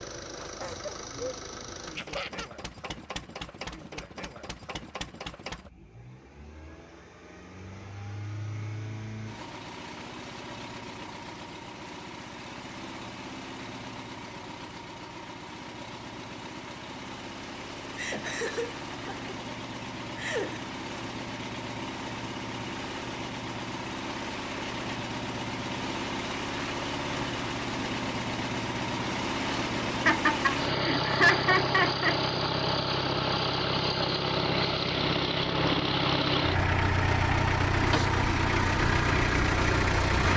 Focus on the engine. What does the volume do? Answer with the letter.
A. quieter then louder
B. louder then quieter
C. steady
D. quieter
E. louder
E.